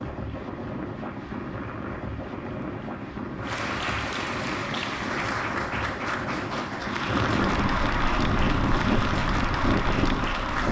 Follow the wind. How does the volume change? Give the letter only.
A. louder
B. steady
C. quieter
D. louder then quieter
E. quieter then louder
A.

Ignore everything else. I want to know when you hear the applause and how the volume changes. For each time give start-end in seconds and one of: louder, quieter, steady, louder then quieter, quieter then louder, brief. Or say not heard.
0.0-10.6 louder.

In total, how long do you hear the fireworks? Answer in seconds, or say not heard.
not heard.